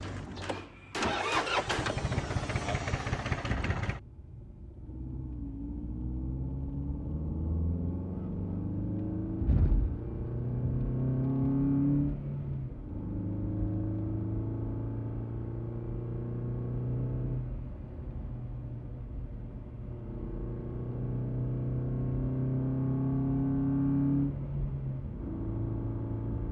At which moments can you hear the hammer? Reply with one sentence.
The hammer can be heard from 0.0 to 1.9 s.